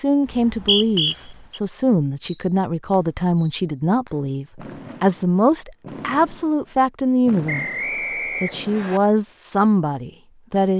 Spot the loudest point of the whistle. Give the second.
1 s.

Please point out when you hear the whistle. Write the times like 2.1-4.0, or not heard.
0.2-1.6, 7.5-9.0.